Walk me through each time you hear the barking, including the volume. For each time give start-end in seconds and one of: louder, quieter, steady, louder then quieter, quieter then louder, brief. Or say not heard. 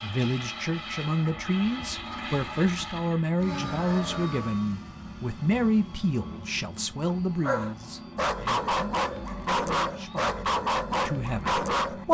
7.4-12.0 steady.